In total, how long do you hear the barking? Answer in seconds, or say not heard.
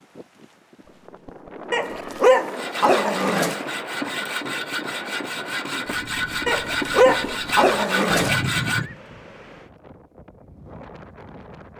4 s.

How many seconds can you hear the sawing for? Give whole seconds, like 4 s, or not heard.
6 s.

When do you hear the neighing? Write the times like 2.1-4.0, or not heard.
0.8-2.3, 8.1-9.0.